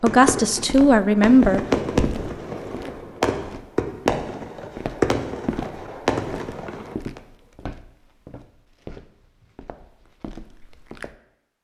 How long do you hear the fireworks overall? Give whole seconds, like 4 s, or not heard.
7 s.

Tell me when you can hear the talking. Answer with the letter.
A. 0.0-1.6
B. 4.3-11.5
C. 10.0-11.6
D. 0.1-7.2
A.